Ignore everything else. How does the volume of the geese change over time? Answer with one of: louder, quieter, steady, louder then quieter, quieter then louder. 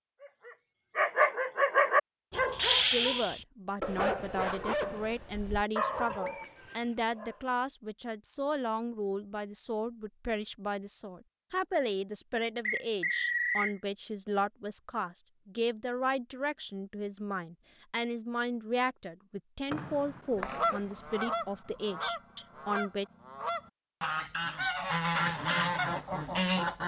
louder.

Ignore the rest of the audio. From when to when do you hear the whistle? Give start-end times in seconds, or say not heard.
6.2-6.7, 12.7-13.8, 19.7-20.8.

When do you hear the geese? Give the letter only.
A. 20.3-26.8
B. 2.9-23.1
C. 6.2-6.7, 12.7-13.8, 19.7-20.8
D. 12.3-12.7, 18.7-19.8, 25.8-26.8
A.